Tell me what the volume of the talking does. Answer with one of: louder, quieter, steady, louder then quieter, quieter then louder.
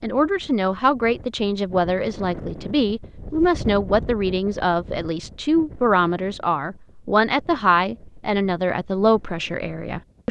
steady.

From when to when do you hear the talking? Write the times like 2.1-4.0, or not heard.
0.0-10.2.